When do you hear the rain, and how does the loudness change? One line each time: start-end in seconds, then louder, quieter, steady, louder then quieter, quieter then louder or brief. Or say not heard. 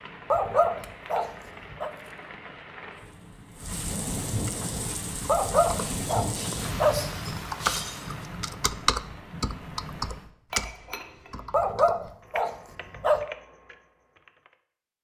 0.0-10.3 louder then quieter.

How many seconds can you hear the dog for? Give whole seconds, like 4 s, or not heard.
5 s.